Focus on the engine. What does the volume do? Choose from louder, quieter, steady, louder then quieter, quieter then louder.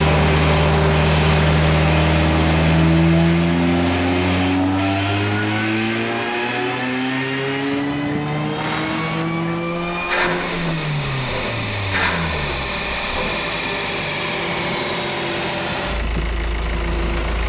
quieter.